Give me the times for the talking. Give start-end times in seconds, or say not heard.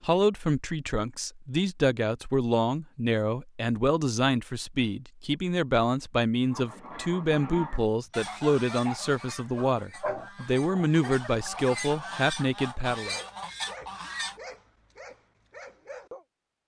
0.0-13.2.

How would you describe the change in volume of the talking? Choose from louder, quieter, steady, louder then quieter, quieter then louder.
steady.